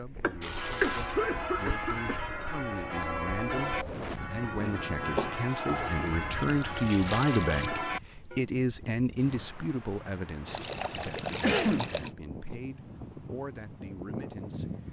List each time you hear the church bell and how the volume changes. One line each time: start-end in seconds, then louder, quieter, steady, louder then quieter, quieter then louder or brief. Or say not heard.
0.3-8.4 steady.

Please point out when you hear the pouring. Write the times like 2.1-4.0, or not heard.
0.4-1.2, 5.7-7.7, 10.4-12.1.